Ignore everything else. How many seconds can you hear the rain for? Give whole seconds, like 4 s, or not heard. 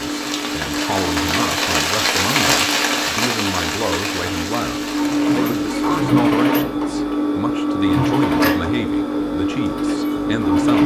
6 s.